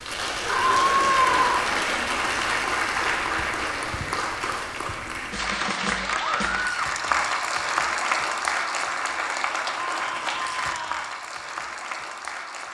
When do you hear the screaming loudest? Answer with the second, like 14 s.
1 s.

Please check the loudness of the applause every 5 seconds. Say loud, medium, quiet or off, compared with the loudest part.
loud, loud, medium.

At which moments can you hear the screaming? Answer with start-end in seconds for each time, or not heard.
0.5-1.4, 6.2-6.9, 9.8-11.1.